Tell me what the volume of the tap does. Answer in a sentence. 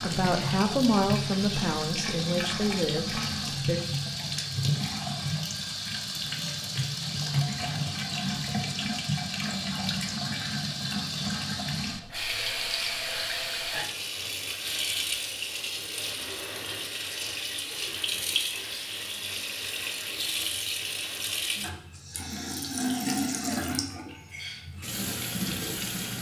The volume of the tap stays about the same.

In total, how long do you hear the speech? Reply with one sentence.
You can hear the speech for 4 seconds altogether.